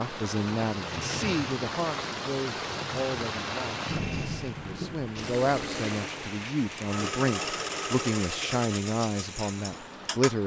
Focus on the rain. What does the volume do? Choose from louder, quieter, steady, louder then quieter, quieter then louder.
quieter.